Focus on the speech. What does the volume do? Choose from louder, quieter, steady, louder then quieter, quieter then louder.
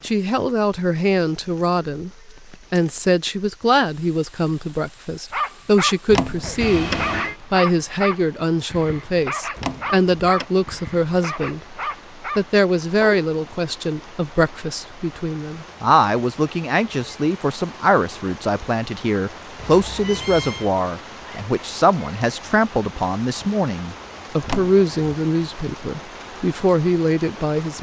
steady.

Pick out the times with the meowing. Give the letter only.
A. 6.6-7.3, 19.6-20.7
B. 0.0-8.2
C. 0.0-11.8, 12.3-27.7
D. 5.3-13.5
A.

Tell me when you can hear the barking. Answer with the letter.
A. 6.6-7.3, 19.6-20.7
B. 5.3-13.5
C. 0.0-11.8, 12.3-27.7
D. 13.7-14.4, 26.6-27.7
B.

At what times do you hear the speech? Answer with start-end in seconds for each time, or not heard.
0.0-11.8, 12.3-27.7.